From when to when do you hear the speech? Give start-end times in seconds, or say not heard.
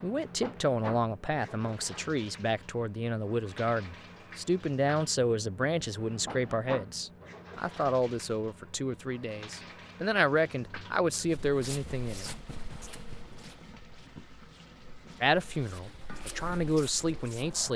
0.0-12.3, 15.2-17.7.